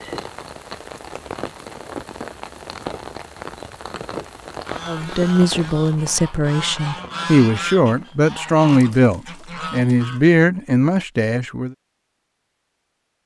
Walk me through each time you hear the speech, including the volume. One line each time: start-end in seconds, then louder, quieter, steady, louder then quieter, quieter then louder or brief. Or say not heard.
4.8-11.8 steady.